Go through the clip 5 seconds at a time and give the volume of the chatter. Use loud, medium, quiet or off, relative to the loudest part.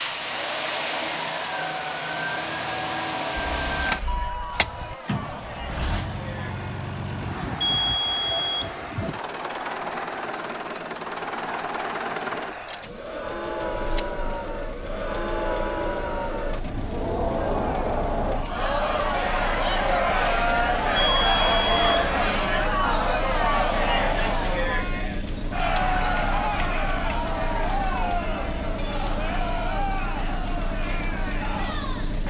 quiet, quiet, medium, loud, loud, medium, medium.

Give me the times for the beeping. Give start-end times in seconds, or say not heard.
7.6-8.7, 20.9-22.1.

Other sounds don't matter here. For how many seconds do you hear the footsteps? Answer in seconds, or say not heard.
not heard.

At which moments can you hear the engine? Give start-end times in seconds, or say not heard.
0.0-32.2.